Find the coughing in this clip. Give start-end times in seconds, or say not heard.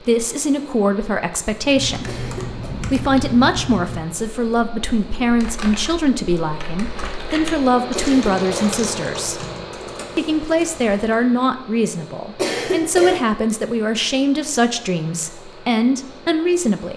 2.0-2.8, 7.9-8.8, 12.3-13.2.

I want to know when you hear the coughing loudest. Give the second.
13 s.